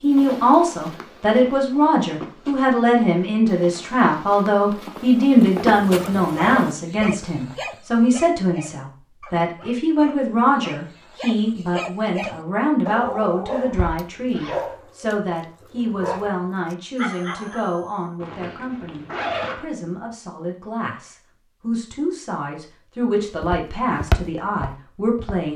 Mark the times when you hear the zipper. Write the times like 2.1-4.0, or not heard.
5.5-6.7, 13.7-14.7, 18.2-19.6.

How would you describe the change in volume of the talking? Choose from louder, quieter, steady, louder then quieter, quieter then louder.
quieter.